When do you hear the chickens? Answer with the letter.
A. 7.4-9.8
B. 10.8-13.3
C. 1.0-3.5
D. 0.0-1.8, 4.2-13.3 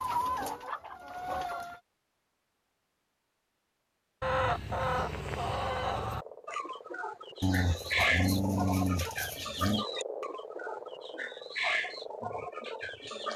D.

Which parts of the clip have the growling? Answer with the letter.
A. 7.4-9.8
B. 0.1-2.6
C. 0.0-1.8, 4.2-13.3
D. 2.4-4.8
A.